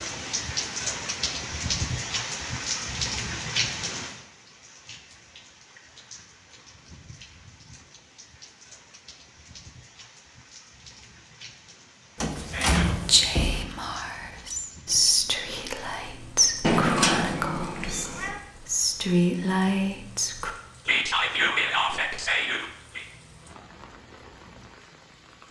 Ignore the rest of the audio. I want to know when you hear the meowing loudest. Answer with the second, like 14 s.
17 s.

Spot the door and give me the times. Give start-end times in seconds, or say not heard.
12.2-13.7.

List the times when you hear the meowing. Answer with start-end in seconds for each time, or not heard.
16.6-18.4.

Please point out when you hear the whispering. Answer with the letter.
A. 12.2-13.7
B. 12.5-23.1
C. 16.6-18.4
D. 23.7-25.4
B.